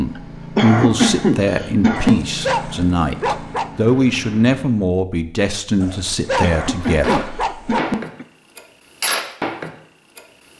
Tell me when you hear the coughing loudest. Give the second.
1 s.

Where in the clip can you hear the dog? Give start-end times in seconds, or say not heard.
2.0-3.7, 5.8-7.8.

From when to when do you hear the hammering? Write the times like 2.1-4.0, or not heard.
6.8-10.5.